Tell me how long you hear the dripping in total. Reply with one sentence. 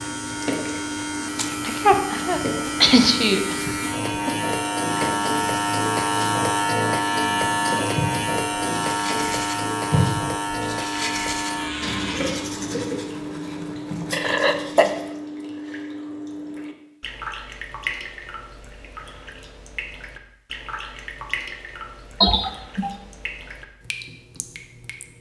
The dripping can be heard for 25 seconds in total.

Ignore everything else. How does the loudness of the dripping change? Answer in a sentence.
The loudness of the dripping goes down.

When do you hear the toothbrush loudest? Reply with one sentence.
The loudest moment of the toothbrush is at 10 seconds.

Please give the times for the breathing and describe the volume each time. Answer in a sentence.
The breathing can't be heard in this clip.